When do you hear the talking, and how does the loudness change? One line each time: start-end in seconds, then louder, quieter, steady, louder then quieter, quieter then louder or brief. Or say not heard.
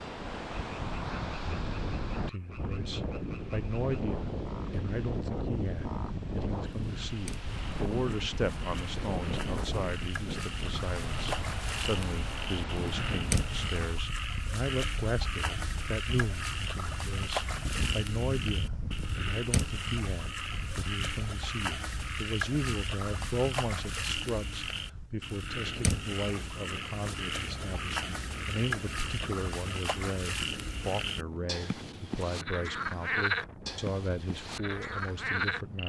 2.1-35.8 steady.